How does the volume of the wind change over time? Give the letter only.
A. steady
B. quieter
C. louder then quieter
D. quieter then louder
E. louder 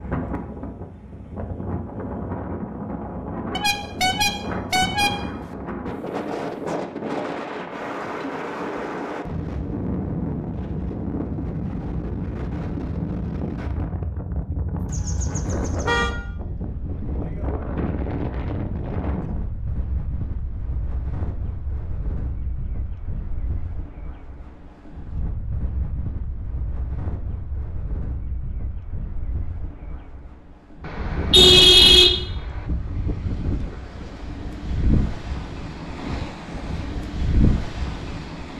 D.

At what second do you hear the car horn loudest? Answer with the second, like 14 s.
32 s.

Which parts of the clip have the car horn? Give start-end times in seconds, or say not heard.
3.5-5.5, 14.8-16.1, 30.9-32.6.